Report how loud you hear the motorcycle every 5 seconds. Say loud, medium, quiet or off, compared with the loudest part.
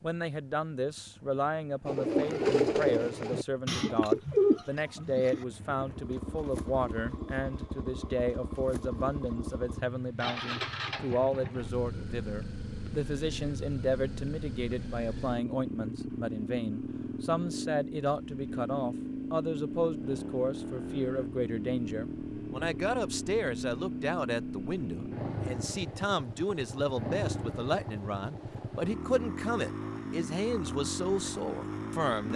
quiet, loud, loud, loud, loud, loud, loud.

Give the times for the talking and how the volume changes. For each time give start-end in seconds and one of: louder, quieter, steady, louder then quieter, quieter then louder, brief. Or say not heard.
0.0-32.3 steady.